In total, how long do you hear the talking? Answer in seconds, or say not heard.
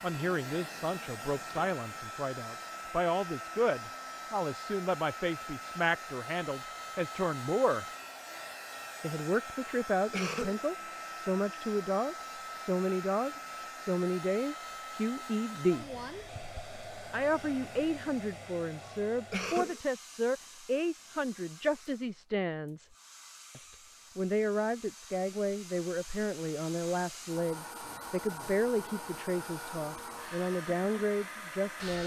29 s.